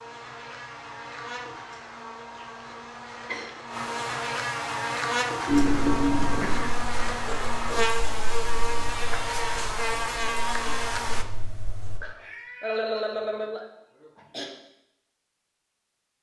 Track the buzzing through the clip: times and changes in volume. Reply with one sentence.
The buzzing can be heard from 0.0 to 11.2 s, getting louder.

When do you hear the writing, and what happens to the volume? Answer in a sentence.
The writing can be heard from 5.5 to 12.0 s, getting quieter.